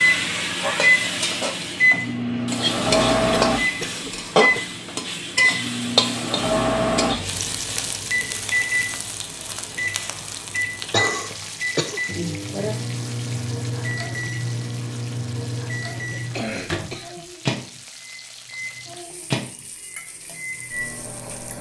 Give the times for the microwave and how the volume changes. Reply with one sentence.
The microwave can be heard from 0.0 to 21.5 s, getting quieter.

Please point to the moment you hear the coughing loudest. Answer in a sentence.
The loudest moment of the coughing is at 11 seconds.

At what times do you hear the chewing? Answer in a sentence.
You can't hear the chewing here.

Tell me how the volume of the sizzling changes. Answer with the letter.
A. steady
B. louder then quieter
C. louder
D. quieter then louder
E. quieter
E.